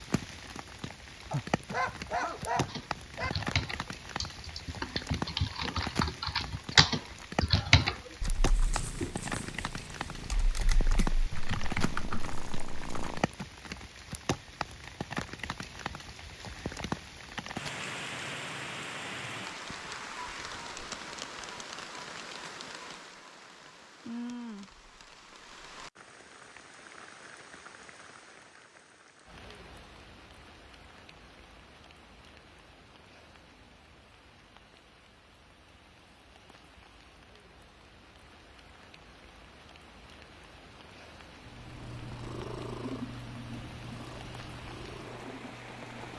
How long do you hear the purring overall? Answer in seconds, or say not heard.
10 s.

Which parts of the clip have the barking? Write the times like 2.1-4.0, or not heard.
1.3-3.3.